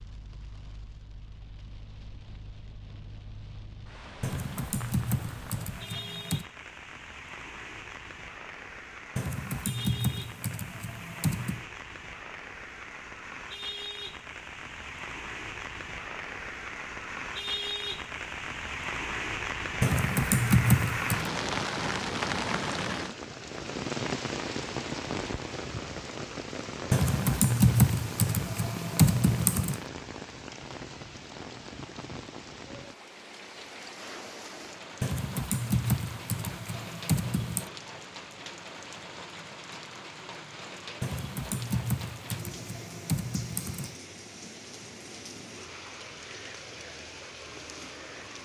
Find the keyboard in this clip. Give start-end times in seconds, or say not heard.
4.2-6.5, 9.2-11.7, 19.8-21.3, 26.9-29.8, 35.0-37.7, 41.0-44.0.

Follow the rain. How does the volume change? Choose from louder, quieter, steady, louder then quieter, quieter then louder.
louder then quieter.